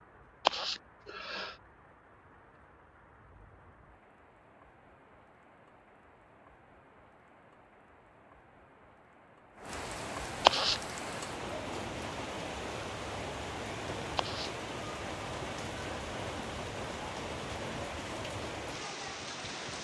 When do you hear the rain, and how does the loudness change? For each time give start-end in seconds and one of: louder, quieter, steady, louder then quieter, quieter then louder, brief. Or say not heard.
0.0-19.8 louder.